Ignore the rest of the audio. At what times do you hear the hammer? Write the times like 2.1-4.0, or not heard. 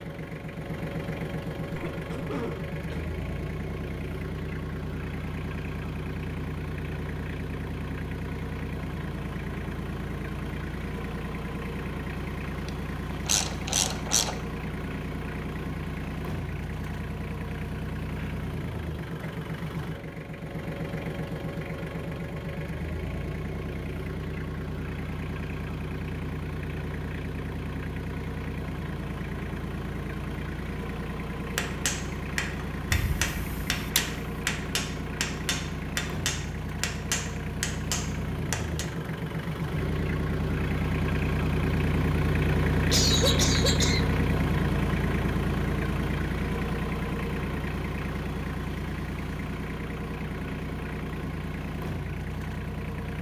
31.6-38.9.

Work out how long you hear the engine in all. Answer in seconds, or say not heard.
53 s.